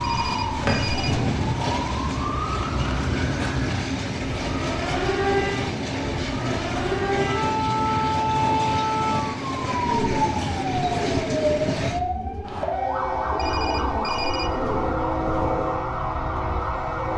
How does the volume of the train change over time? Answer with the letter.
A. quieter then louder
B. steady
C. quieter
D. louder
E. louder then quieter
B.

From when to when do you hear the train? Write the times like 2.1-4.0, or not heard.
0.0-17.1.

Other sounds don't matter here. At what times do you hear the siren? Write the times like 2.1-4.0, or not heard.
0.0-17.1.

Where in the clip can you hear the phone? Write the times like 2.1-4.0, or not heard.
0.0-1.1, 13.3-14.7.